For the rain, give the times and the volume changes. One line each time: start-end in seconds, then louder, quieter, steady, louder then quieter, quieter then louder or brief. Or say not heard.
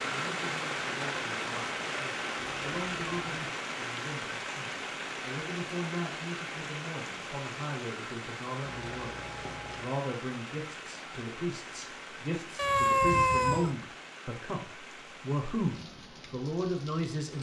0.0-17.3 quieter.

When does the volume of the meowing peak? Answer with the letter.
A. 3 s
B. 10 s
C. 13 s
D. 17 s
C.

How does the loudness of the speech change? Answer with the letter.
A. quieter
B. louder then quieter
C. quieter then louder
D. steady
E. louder
E.